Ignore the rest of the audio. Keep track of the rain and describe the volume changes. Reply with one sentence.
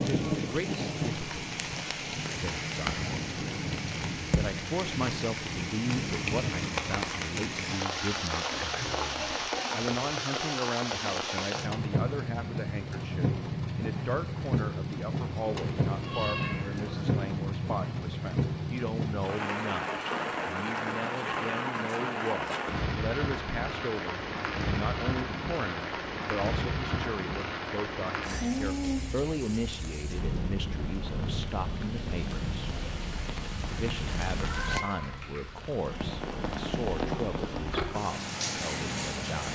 The loudness of the rain stays about the same.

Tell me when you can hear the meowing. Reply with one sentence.
The meowing can be heard from 15.4 to 17.4 s and from 34.3 to 35.5 s.